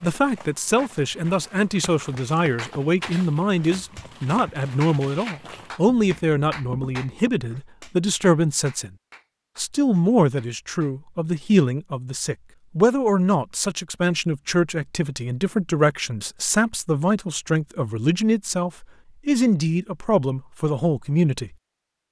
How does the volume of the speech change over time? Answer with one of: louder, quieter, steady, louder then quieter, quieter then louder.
steady.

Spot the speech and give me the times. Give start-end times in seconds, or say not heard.
0.0-8.9, 9.6-21.5.